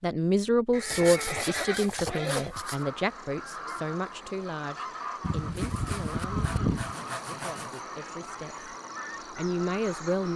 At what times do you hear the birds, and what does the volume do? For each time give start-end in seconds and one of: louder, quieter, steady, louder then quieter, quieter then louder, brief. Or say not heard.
2.5-10.3 steady.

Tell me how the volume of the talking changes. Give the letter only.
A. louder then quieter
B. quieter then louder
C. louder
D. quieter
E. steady
B.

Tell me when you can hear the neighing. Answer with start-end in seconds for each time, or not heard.
0.7-2.6, 5.2-7.0.